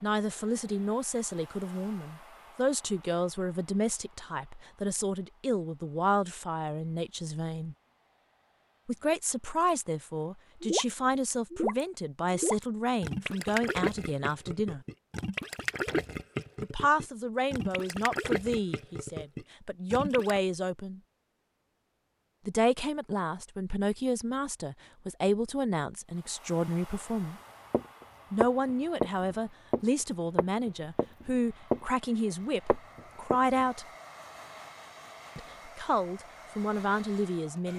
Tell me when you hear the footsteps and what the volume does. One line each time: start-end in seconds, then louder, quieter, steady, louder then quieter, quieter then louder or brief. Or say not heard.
27.7-31.8 quieter
32.6-33.6 brief.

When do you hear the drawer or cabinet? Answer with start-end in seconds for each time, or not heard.
not heard.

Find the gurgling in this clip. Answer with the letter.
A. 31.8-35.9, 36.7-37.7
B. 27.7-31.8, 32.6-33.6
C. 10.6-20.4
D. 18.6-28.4
C.